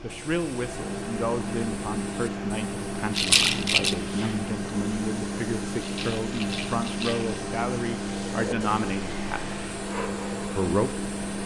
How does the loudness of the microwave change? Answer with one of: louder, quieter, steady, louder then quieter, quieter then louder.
steady.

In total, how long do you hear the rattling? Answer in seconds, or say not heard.
2 s.